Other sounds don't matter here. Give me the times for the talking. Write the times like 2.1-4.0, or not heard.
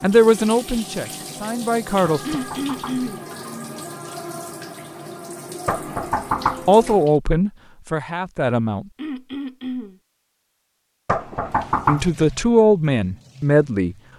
0.0-2.4, 6.7-8.8, 11.8-13.9.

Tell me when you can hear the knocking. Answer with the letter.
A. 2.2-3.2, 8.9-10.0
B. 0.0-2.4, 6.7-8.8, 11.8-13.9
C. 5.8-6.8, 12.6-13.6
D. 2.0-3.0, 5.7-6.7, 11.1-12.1
D.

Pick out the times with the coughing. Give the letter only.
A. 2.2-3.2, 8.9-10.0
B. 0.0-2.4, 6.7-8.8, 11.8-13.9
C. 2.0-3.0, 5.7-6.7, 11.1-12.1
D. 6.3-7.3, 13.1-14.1
A.